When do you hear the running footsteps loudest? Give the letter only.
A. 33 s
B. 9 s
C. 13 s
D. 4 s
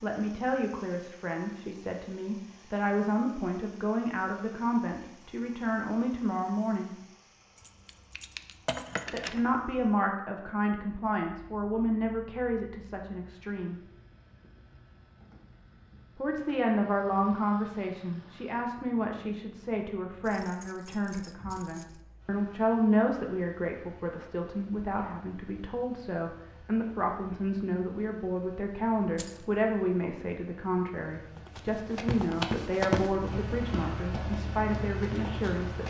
A.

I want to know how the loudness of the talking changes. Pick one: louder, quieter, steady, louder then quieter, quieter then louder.
steady.